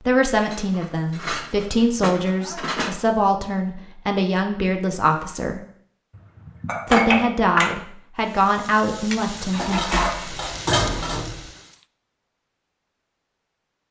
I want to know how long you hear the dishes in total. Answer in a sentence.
The dishes can be heard for 6 seconds in total.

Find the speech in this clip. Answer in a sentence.
You can hear the speech from 0.1 to 5.6 s and from 6.8 to 10.1 s.